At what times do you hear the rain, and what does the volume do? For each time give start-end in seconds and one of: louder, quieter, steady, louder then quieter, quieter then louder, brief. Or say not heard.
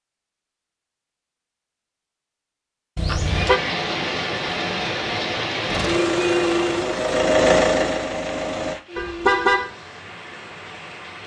3.1-11.2 quieter.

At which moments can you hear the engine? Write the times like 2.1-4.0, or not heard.
5.7-8.8.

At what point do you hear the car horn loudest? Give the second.
9 s.